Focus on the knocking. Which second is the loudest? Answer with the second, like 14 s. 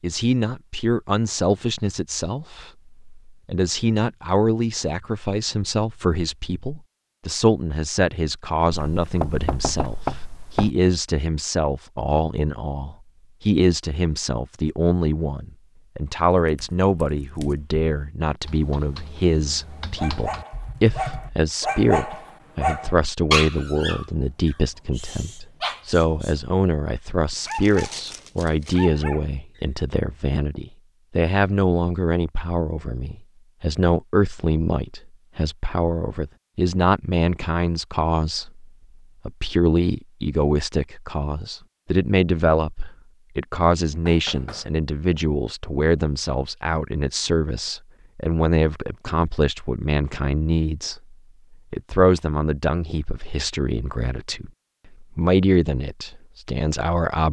10 s.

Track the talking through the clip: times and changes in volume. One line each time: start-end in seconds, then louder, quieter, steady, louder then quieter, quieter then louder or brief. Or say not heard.
0.0-57.2 steady.